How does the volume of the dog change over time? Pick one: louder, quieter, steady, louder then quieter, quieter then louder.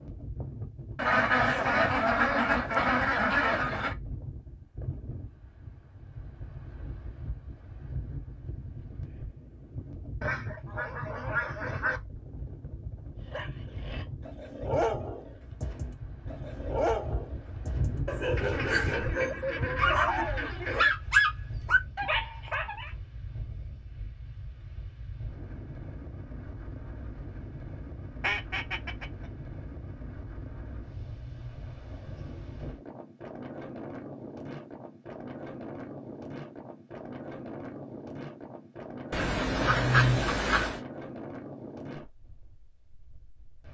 louder.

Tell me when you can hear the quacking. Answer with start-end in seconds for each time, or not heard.
0.9-4.0, 10.2-12.0, 18.4-20.9, 28.2-29.1, 39.1-40.8.